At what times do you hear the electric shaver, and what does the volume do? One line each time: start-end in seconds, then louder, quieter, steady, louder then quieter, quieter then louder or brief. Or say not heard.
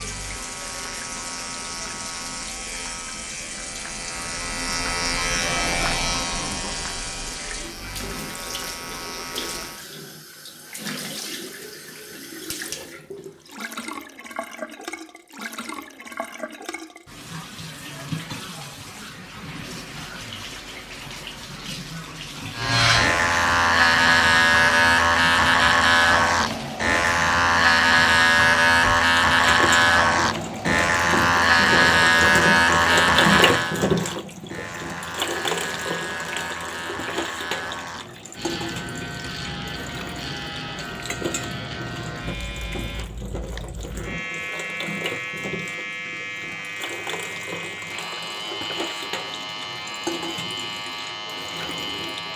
0.0-9.9 louder then quieter
22.5-52.3 quieter.